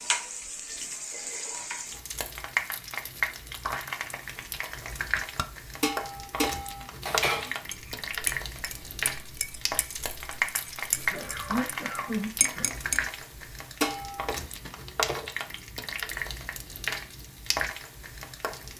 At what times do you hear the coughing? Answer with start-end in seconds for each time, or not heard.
10.9-12.7.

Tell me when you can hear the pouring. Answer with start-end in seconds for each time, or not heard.
not heard.